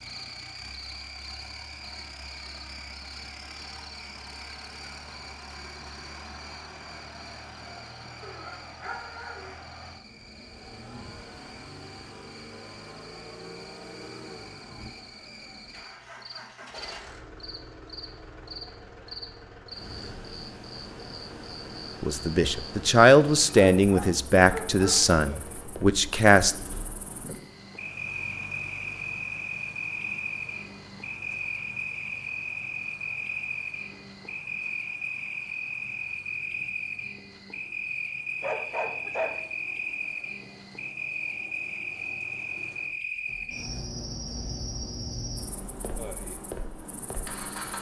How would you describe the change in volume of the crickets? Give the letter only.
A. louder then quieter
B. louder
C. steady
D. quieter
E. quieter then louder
B.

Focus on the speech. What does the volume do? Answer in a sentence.
The loudness of the speech goes down.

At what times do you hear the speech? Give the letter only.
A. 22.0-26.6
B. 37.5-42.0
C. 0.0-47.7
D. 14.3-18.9
A.